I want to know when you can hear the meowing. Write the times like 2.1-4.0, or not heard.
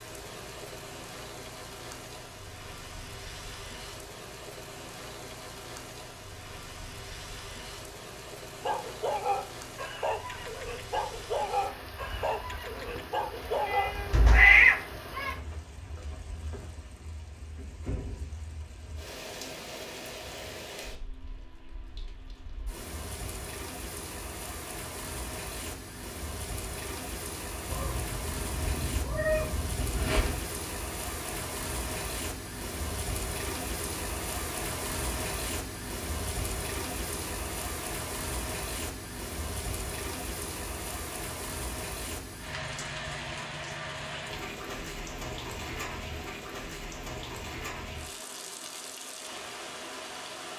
13.7-15.3, 27.6-30.4.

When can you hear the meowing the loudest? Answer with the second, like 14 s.
15 s.